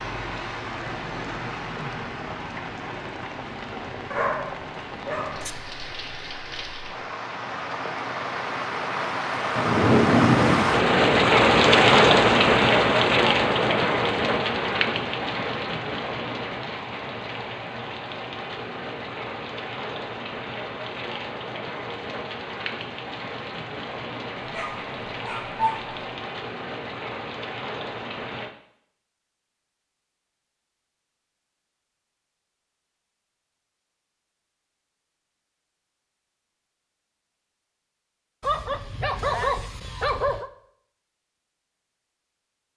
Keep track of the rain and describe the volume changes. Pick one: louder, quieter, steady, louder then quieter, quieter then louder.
louder then quieter.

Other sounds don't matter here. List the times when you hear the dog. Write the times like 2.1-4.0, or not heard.
4.1-5.5, 24.4-25.9, 38.4-40.5.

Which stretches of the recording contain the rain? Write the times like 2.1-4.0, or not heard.
0.0-28.6.